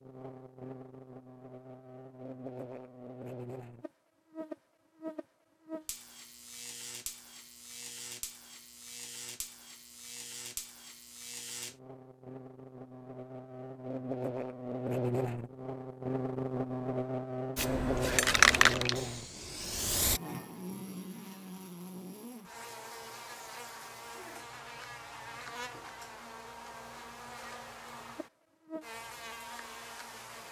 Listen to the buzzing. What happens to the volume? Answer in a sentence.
The volume of the buzzing goes up, then down.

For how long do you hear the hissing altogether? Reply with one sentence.
You can hear the hissing for 3 seconds altogether.